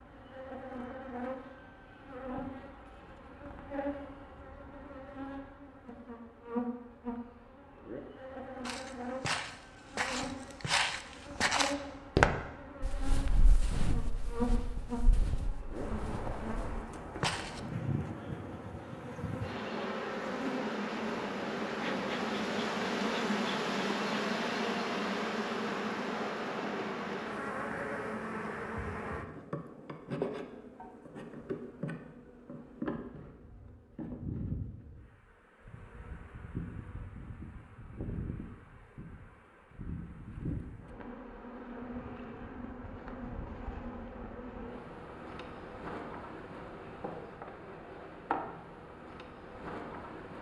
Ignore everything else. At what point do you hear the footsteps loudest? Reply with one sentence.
The volume of the footsteps peaks at 12 seconds.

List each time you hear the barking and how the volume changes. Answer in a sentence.
The barking can't be heard in this clip.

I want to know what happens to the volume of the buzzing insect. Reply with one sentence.
The loudness of the buzzing insect goes up, then down.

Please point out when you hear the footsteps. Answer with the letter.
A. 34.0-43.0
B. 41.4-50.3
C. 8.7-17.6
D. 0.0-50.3
C.